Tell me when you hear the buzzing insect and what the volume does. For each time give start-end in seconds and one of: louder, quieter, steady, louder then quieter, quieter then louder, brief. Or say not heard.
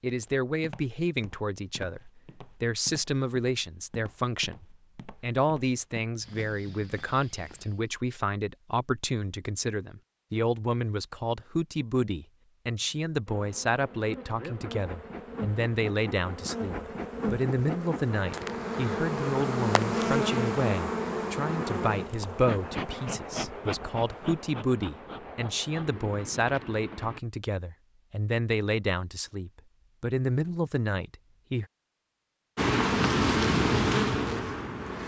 13.2-27.2 louder then quieter
32.5-35.0 brief.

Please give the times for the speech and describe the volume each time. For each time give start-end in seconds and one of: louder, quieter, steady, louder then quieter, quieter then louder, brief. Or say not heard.
0.0-31.6 steady.